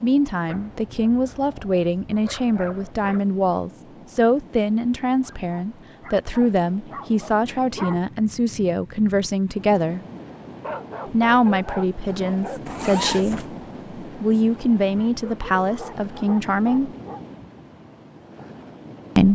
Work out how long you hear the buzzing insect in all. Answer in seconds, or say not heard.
not heard.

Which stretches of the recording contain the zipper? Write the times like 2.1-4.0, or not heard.
12.7-13.5.